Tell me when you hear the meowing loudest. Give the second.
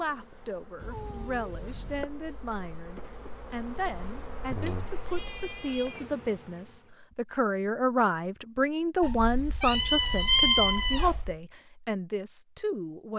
10 s.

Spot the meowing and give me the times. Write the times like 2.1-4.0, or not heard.
0.8-2.0, 4.6-6.1, 9.0-11.3.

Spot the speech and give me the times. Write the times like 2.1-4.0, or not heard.
0.0-13.1.